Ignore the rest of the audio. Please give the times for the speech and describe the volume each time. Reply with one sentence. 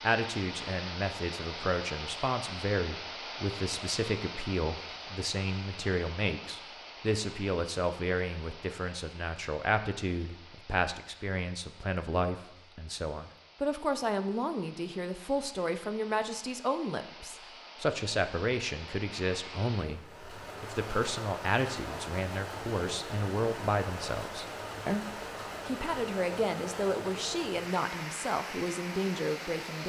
You can hear the speech from 0.0 to 25.1 s, at a steady volume; and from 25.6 to 29.8 s, at a steady volume.